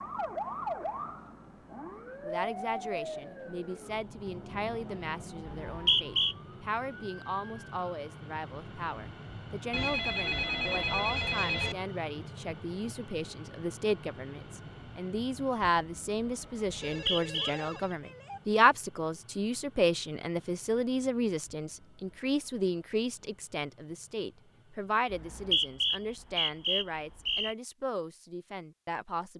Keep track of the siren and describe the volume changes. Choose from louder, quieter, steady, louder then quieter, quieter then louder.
quieter.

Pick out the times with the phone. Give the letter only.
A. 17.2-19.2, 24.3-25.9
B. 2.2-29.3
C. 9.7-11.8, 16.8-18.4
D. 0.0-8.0
C.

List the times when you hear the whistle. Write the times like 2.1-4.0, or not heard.
5.5-6.3, 16.8-17.4, 25.1-27.6.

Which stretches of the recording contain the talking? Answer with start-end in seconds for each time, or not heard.
2.2-29.3.